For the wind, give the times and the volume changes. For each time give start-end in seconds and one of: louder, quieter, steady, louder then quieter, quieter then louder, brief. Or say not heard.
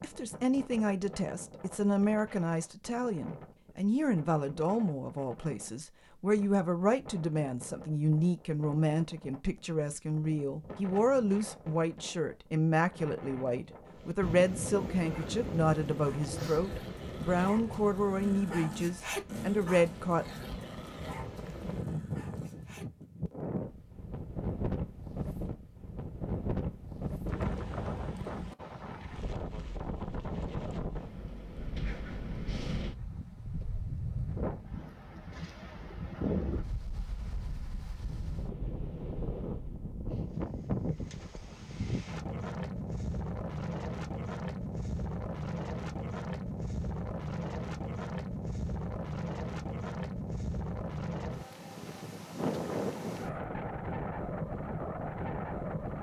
0.0-55.9 louder.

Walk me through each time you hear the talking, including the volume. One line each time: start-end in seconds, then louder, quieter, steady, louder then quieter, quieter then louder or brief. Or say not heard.
0.0-20.2 steady.